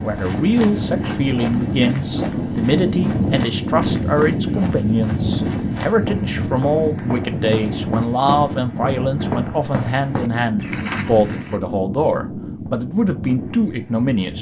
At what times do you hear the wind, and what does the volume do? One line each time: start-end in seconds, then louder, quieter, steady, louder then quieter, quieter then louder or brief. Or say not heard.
0.0-14.3 quieter.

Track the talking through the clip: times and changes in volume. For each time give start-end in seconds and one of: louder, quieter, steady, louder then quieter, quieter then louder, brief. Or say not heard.
0.0-14.3 steady.